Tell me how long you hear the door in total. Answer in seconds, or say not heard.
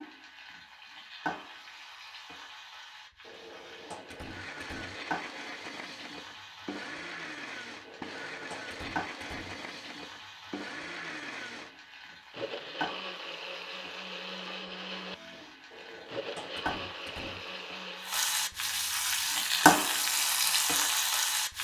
6 s.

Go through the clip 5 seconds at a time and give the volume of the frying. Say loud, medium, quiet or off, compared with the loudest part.
quiet, quiet, quiet, loud, loud.